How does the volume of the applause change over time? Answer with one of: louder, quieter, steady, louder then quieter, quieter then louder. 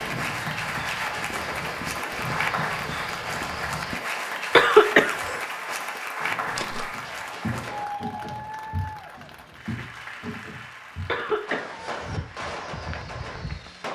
quieter.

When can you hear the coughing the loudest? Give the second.
5 s.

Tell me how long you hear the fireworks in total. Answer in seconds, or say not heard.
10 s.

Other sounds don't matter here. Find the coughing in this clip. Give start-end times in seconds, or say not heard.
4.5-5.4, 11.1-12.2.